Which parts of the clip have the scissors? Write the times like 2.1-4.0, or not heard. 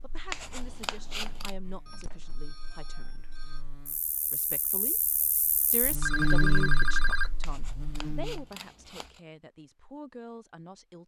0.2-1.6, 7.4-9.2.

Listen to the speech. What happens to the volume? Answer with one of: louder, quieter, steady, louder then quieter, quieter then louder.
louder then quieter.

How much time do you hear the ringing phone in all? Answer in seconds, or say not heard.
3 s.